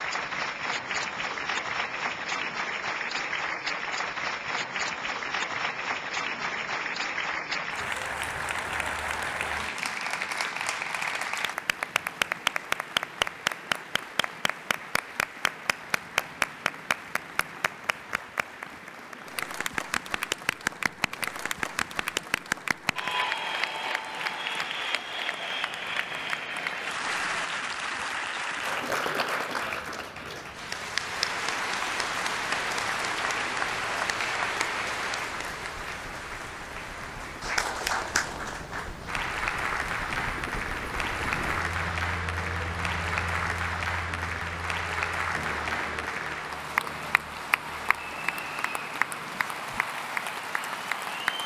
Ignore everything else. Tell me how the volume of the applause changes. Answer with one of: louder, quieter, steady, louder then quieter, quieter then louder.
steady.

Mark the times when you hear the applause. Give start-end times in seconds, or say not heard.
0.0-51.4.